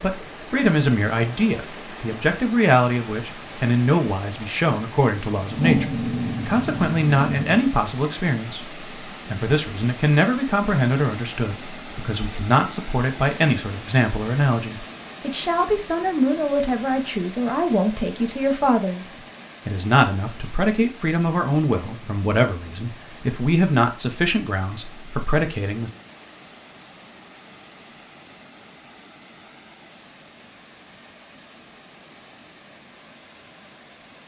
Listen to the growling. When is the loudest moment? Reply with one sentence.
The volume of the growling peaks at 6 seconds.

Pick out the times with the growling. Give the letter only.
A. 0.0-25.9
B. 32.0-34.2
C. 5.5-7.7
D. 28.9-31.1
C.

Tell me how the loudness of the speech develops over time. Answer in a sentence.
The volume of the speech stays about the same.